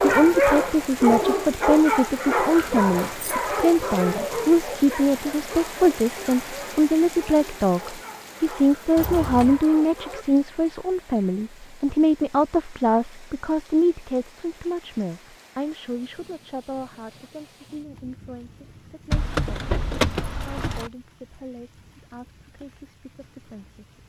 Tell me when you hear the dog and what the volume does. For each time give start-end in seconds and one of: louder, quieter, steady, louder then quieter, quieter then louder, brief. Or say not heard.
0.0-10.2 quieter.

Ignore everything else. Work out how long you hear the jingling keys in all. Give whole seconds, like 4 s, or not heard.
3 s.